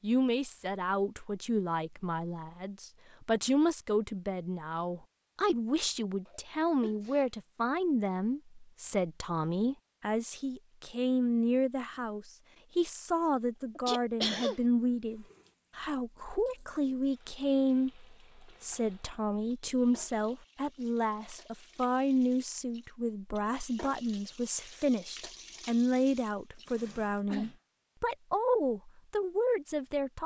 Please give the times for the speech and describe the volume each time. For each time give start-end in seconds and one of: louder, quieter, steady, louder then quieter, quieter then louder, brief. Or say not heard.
0.0-30.2 steady.